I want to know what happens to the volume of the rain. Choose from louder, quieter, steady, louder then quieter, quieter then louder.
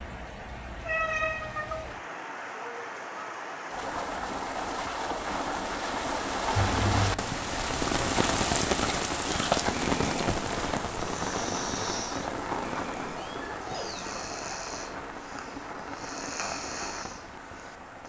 louder then quieter.